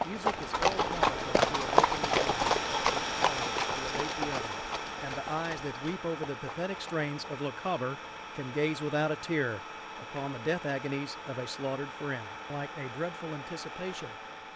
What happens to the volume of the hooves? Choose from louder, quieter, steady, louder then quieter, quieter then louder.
quieter.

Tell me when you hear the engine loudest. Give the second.
3 s.